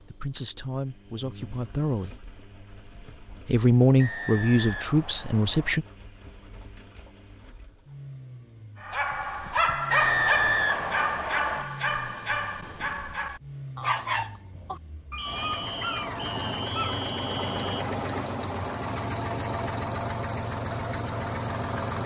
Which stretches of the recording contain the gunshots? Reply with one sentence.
You can't hear the gunshots here.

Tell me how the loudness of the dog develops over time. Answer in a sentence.
The volume of the dog goes down.